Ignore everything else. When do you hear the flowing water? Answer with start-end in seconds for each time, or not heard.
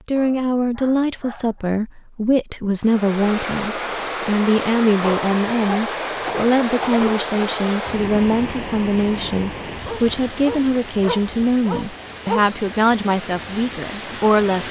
2.8-14.6.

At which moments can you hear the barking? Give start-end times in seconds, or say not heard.
0.1-1.4, 5.0-7.6, 9.8-12.4.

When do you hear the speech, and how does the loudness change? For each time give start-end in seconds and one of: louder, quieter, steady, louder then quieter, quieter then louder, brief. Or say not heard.
0.1-14.6 steady.